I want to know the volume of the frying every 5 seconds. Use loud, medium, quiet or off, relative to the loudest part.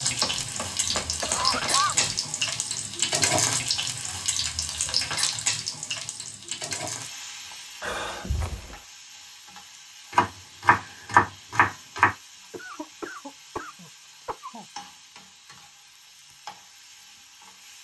loud, medium, quiet, quiet.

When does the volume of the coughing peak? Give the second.
2 s.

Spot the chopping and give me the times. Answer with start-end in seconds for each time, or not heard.
0.2-2.2, 10.1-12.1.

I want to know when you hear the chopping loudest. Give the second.
11 s.